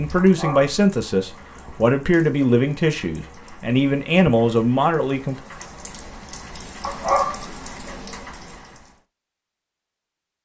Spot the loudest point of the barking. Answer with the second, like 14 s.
7 s.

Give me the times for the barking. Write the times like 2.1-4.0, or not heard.
0.1-1.6, 6.8-8.2.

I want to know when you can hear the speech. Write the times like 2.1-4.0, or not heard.
0.0-5.3.